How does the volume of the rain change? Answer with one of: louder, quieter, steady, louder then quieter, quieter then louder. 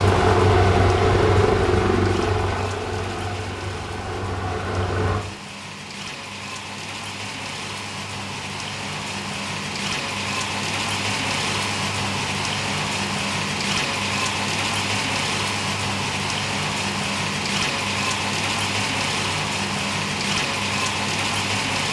louder.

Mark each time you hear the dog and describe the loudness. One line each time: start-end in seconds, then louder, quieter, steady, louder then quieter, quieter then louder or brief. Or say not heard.
not heard.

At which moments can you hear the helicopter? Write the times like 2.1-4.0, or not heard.
0.0-5.2.